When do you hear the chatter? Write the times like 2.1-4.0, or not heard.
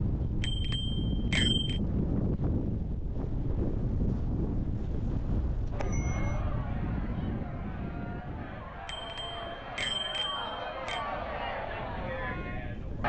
5.7-13.0.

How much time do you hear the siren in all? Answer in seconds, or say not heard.
not heard.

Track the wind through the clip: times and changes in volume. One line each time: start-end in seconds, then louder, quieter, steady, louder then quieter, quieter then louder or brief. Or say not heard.
0.0-13.0 quieter.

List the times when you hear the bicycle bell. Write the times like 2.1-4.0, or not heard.
0.4-1.8, 5.8-6.4, 8.8-11.1.